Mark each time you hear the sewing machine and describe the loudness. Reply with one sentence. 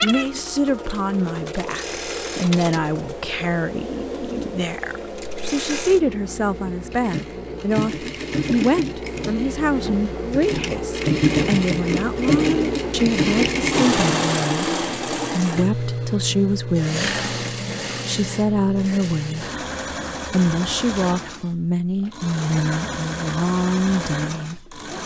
The sewing machine can be heard from 0.0 to 25.0 s, getting louder then quieter.